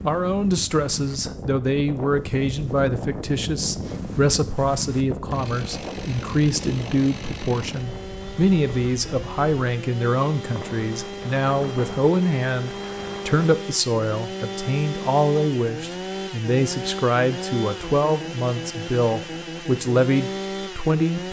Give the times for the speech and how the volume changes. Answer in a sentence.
You can hear the speech from 0.0 to 21.2 s, at a steady volume.